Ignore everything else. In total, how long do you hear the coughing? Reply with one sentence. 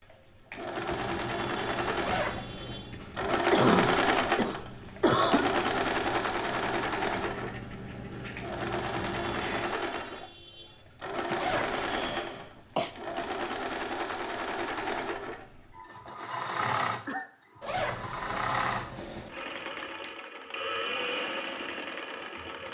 You can hear the coughing for 4 seconds altogether.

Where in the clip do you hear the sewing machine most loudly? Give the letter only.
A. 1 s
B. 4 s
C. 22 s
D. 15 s
B.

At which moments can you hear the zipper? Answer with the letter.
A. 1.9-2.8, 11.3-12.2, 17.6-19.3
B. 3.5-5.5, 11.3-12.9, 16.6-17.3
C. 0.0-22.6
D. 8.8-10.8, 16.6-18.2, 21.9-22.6
A.